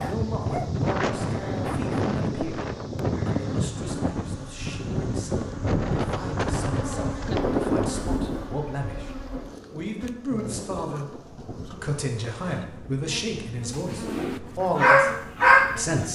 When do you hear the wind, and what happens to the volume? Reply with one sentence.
The wind can be heard from 0.0 to 15.9 s, getting quieter.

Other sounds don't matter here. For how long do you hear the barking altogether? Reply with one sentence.
You can hear the barking for 4 seconds altogether.